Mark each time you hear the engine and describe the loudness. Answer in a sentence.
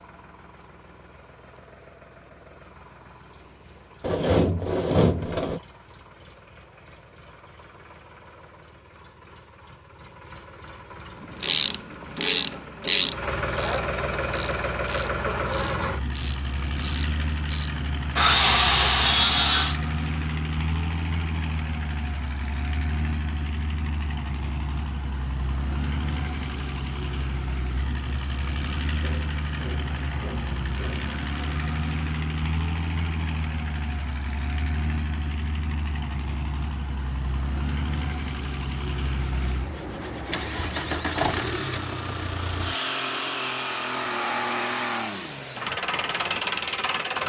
The engine can be heard from 0.0 to 47.2 s, getting louder.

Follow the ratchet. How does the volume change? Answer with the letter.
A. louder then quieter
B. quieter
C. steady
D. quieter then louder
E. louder
B.